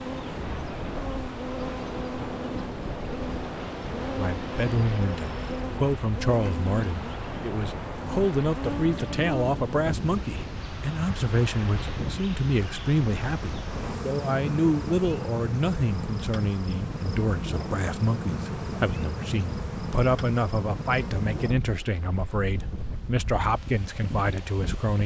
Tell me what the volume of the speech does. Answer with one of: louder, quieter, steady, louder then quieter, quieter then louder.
steady.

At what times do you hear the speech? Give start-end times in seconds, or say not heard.
4.2-25.0.